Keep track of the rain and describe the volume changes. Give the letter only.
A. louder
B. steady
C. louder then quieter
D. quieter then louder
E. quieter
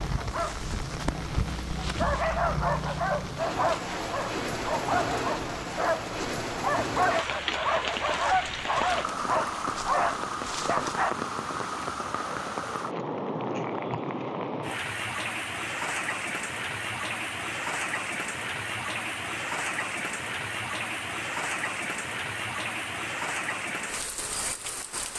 B.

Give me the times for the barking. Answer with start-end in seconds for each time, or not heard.
0.1-11.2.